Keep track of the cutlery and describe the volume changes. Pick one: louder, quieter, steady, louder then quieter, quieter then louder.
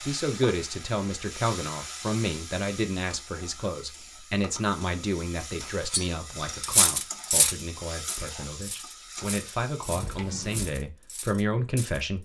quieter.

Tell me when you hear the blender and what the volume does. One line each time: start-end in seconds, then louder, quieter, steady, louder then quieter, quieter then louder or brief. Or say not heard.
not heard.